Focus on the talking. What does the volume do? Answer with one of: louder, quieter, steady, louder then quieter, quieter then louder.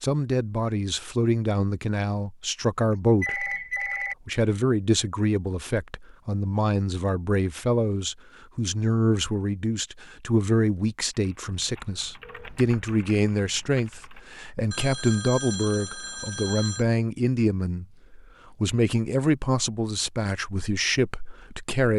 steady.